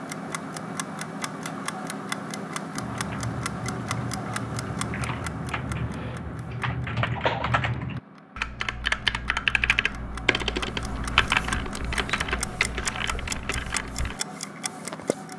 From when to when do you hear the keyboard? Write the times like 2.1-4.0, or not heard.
2.8-14.2.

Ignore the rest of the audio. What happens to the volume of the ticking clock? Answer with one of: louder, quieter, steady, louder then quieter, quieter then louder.
quieter then louder.